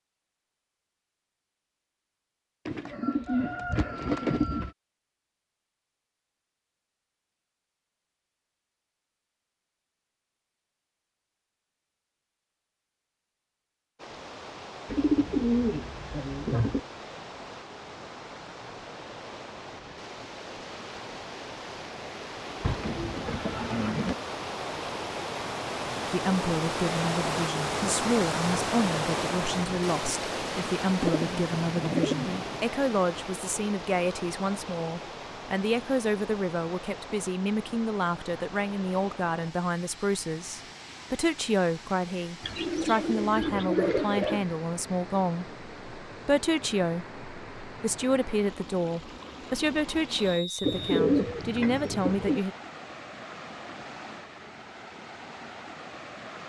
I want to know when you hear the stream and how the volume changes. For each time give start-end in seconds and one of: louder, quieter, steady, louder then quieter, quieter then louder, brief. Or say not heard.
13.9-56.4 louder then quieter.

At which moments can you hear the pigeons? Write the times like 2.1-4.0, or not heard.
2.6-4.7, 14.8-16.8, 22.6-24.1, 31.0-32.6, 42.4-44.5, 50.6-52.4.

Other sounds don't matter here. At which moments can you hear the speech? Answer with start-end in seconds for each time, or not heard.
26.1-52.5.